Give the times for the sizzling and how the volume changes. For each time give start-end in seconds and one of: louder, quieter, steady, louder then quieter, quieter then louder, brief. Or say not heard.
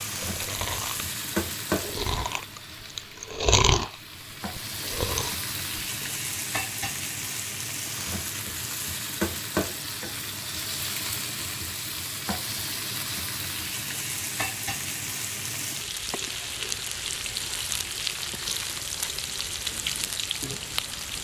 0.0-21.1 steady.